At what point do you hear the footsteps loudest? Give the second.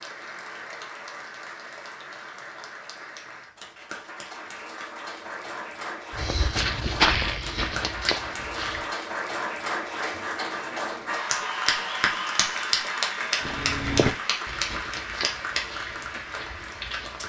7 s.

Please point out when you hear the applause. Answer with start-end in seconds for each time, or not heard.
0.0-17.2.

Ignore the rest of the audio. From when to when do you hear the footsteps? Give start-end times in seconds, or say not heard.
6.1-8.8, 13.3-17.2.